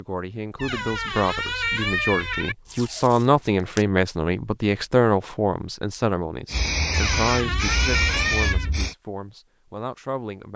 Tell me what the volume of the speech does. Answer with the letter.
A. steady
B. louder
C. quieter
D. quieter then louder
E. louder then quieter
E.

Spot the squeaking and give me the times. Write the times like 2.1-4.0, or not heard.
0.6-2.5, 6.9-8.7.